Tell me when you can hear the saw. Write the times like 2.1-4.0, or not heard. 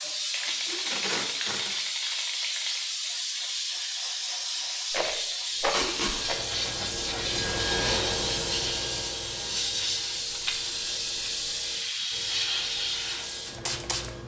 5.5-14.2.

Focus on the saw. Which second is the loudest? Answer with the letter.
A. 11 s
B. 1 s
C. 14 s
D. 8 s
D.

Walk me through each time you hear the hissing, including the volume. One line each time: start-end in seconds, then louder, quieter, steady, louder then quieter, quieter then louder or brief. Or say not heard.
0.0-14.2 steady.